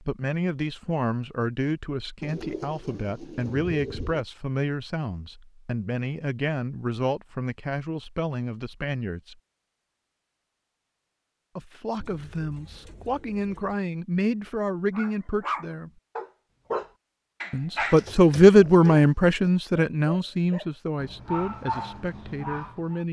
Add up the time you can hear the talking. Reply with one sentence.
The talking can be heard for 19 seconds in total.